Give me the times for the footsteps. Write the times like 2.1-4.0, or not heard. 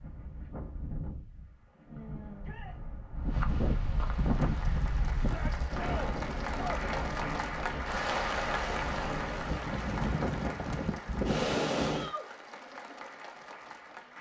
not heard.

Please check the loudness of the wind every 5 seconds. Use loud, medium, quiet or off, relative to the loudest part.
medium, medium, loud.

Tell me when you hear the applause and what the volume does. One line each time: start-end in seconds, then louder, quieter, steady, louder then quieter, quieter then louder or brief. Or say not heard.
4.2-14.1 louder then quieter.